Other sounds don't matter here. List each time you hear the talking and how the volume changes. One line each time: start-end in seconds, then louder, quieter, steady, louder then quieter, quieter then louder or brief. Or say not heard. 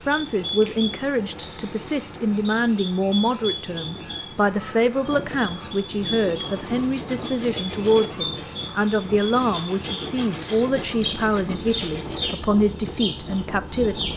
0.1-14.0 steady.